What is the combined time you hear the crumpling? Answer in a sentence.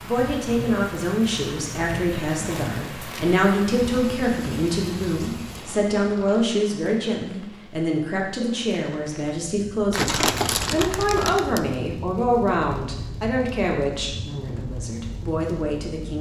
You can hear the crumpling for 3 seconds altogether.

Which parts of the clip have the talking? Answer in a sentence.
You can hear the talking from 0.0 to 16.1 s.